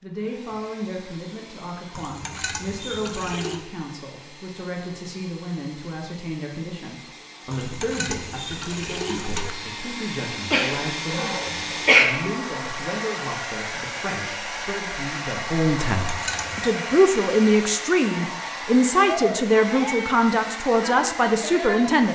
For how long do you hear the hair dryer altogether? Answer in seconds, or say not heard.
22 s.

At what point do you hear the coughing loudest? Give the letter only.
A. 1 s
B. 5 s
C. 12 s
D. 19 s
C.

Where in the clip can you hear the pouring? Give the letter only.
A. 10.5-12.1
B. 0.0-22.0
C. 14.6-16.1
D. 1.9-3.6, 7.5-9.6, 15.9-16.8
D.